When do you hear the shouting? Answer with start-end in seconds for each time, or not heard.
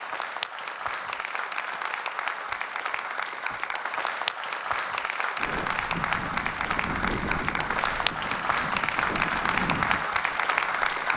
not heard.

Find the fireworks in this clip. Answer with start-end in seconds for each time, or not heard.
not heard.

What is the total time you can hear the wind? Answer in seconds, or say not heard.
6 s.